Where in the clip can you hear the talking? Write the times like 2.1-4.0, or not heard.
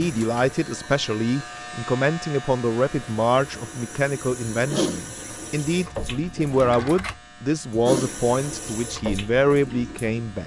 0.0-10.4.